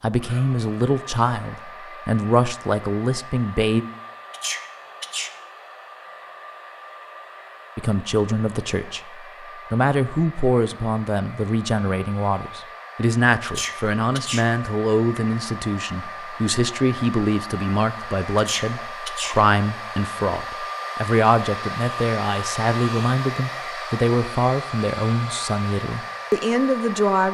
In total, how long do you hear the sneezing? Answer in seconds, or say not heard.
3 s.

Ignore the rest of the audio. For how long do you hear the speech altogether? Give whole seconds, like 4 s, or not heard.
23 s.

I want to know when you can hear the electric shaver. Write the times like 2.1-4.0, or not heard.
not heard.